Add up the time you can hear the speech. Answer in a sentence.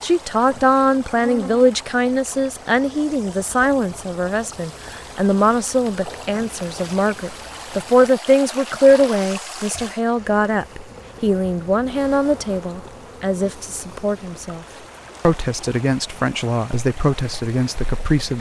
The speech can be heard for 18 seconds in total.